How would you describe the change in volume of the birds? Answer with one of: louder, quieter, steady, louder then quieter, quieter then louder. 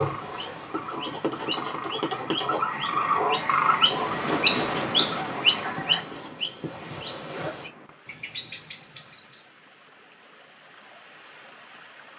louder then quieter.